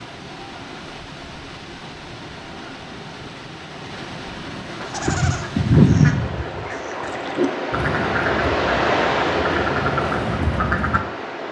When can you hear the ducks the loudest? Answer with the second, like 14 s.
6 s.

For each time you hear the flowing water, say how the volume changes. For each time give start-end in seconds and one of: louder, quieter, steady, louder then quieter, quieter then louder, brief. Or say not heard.
0.0-11.4 louder.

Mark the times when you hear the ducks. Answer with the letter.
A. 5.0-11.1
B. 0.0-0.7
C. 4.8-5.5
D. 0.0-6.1
A.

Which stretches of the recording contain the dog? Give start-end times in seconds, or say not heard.
not heard.